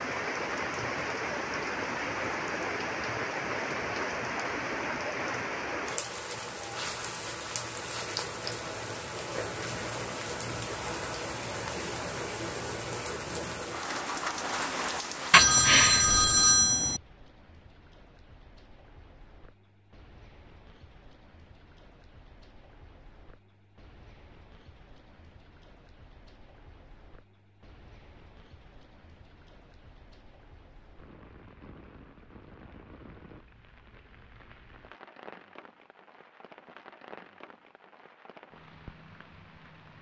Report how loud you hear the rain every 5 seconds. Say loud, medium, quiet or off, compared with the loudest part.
loud, loud, loud, medium, quiet, quiet, quiet, quiet.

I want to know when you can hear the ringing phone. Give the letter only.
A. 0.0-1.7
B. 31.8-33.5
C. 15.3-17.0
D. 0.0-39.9
C.